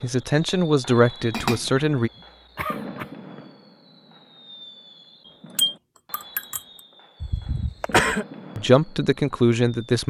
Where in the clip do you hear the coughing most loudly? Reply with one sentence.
The volume of the coughing peaks at 8 seconds.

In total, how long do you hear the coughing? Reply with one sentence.
You can hear the coughing for 3 seconds altogether.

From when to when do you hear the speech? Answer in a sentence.
The speech can be heard from 0.0 to 2.1 s and from 8.6 to 10.0 s.